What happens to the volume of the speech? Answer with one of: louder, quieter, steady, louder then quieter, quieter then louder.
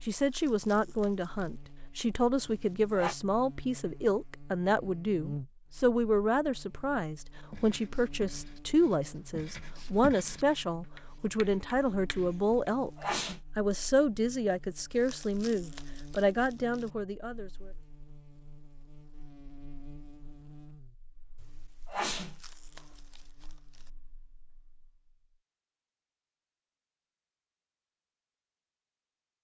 steady.